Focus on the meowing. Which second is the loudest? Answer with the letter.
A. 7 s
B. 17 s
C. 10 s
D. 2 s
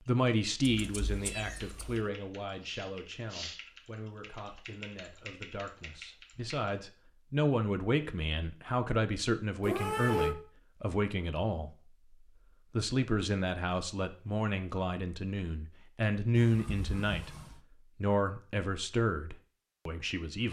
C.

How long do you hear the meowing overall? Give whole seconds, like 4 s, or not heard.
3 s.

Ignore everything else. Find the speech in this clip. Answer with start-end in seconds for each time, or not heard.
0.1-11.9, 12.8-20.4.